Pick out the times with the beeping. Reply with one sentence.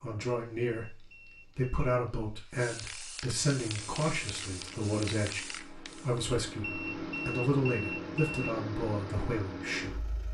The beeping can be heard from 0.8 to 1.8 s and from 6.6 to 8.6 s.